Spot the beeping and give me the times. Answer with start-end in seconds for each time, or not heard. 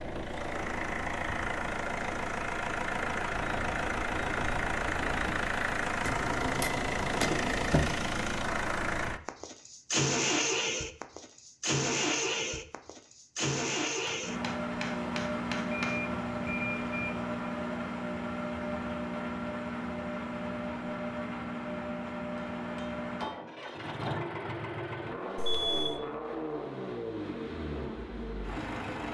3.3-5.3, 15.7-17.4, 25.4-25.9.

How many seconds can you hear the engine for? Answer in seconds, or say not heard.
29 s.